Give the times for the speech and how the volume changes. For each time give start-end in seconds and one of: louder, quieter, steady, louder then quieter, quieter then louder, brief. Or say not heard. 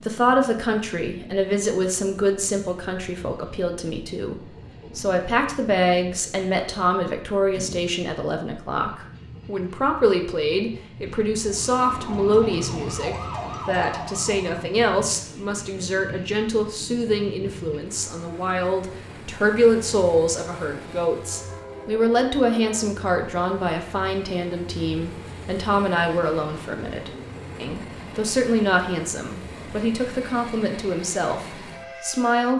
0.0-32.5 steady.